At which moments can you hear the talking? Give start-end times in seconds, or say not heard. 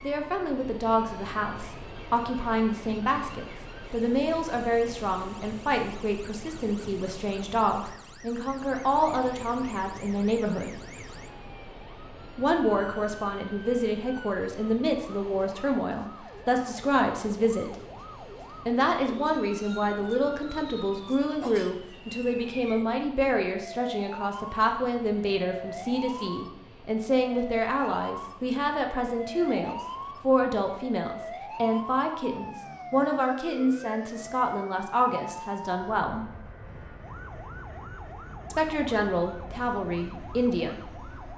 0.0-10.8, 12.3-17.7, 18.6-36.2, 38.5-41.1.